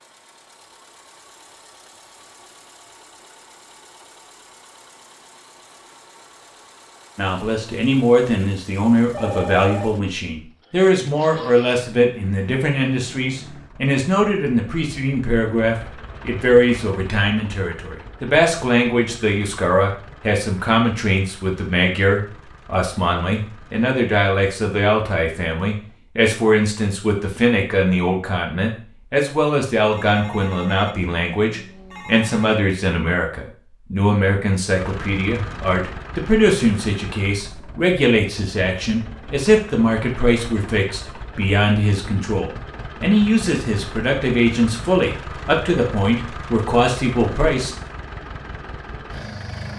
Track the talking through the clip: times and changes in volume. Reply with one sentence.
The talking can be heard from 7.2 to 47.7 s, at a steady volume.